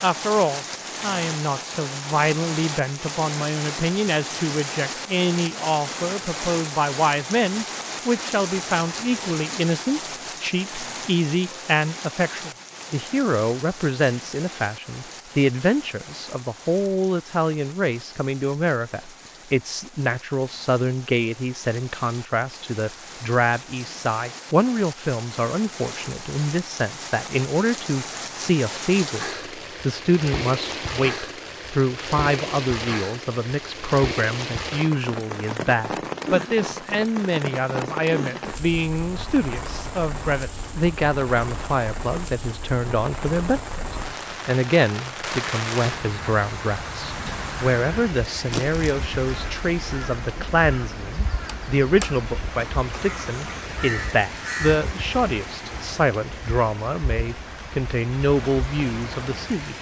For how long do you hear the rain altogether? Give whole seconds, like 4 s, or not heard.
60 s.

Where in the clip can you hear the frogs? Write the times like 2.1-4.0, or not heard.
not heard.